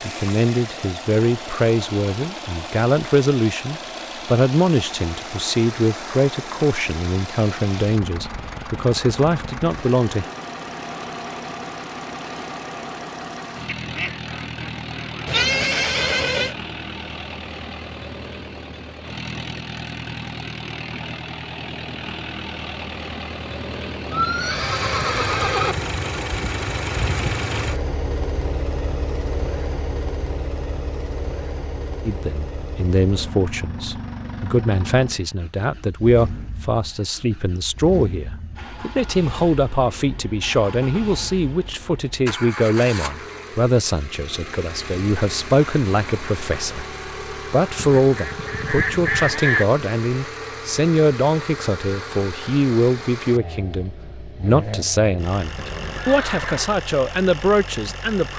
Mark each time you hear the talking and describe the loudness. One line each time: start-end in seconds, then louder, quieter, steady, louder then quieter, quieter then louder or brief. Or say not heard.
0.0-10.2 steady
32.0-58.3 steady.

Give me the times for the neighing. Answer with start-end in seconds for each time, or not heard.
15.2-16.6, 24.1-25.8, 55.5-56.8.